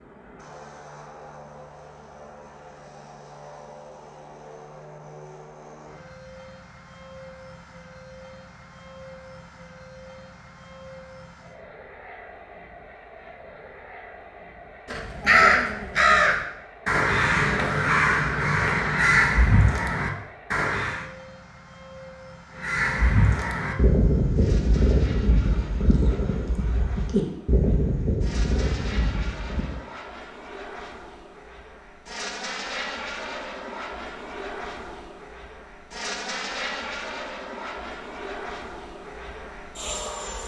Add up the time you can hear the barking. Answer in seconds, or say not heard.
not heard.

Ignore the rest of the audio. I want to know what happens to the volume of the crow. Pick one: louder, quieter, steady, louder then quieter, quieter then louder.
quieter.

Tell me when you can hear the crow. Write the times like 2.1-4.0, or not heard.
14.8-21.1, 22.6-29.9.